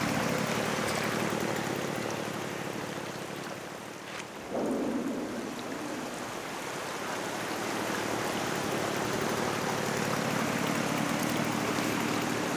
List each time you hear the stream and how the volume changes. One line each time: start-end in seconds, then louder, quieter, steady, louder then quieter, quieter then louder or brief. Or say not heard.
0.0-12.5 quieter then louder.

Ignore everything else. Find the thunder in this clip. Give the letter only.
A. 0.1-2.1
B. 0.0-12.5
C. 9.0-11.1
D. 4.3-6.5
D.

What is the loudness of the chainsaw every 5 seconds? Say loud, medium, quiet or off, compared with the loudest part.
loud, medium, loud.